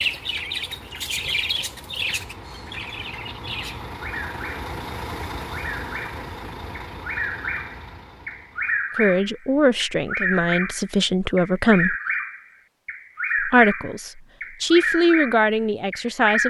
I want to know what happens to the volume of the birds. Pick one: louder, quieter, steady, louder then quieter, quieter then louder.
quieter then louder.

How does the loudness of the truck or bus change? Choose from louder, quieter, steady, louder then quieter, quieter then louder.
louder then quieter.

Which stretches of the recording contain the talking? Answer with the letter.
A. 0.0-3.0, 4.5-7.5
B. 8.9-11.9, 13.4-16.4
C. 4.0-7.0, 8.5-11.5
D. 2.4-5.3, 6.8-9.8
B.